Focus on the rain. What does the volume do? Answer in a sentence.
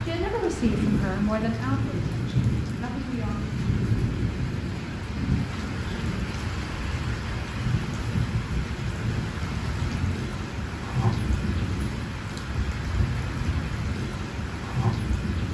The volume of the rain stays about the same.